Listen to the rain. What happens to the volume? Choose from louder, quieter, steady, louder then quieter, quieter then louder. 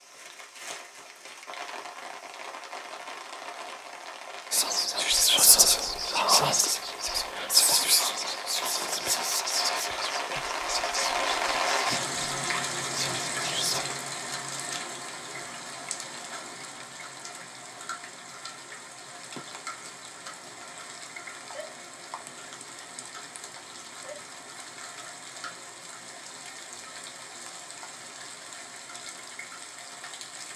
louder then quieter.